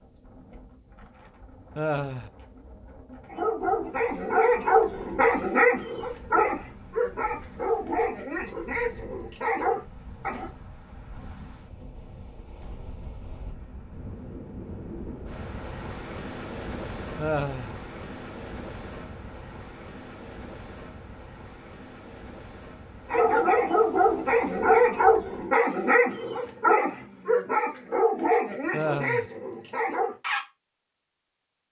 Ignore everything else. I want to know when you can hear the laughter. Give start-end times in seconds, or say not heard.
1.8-2.3, 17.1-17.8, 28.7-29.3.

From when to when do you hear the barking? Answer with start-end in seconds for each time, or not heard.
3.2-10.5, 23.1-30.4.